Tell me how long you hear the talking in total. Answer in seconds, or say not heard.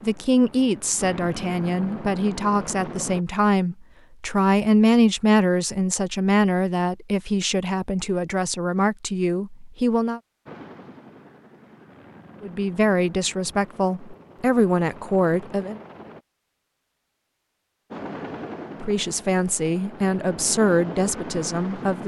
17 s.